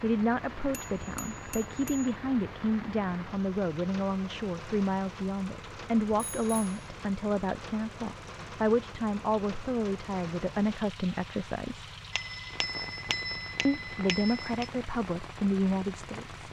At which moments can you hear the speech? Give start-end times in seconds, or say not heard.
0.0-11.8, 13.7-16.3.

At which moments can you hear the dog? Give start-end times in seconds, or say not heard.
not heard.